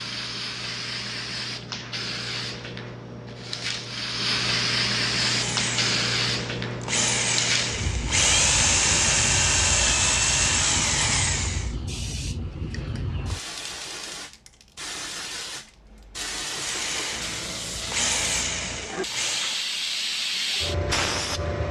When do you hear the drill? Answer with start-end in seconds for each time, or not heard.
5.2-11.7, 16.5-19.6.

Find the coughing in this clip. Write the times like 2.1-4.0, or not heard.
not heard.